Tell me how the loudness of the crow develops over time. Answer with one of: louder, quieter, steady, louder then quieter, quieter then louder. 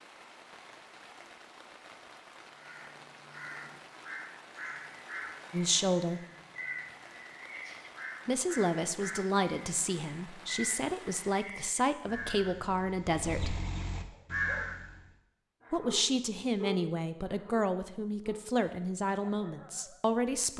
louder.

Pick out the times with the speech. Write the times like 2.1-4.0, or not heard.
5.5-6.2, 8.2-13.6, 15.7-20.5.